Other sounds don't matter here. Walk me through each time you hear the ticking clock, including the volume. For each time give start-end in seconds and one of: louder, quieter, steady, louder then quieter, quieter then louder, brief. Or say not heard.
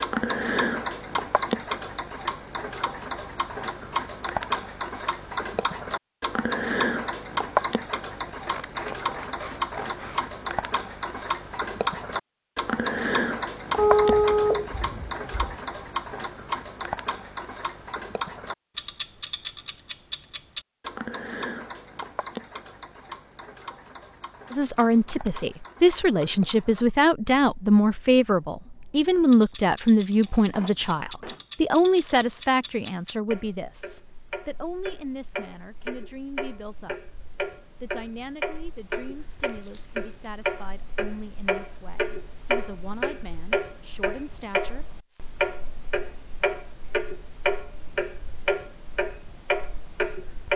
0.0-50.5 quieter then louder.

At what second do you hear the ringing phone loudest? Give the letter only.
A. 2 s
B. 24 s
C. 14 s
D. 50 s
C.